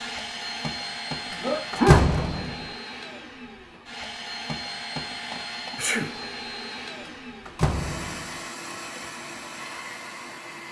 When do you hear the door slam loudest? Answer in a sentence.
The volume of the door slam peaks at 2 seconds.